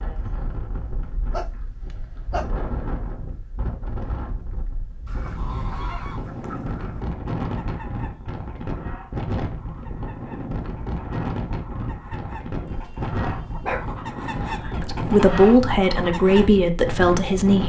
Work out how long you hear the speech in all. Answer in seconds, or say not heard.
3 s.